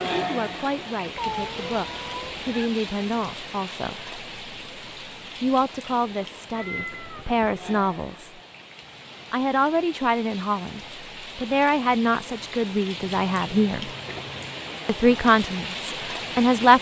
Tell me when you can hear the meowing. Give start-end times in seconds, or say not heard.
1.1-2.7, 6.5-7.5, 12.9-14.6.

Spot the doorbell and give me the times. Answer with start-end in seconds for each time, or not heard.
not heard.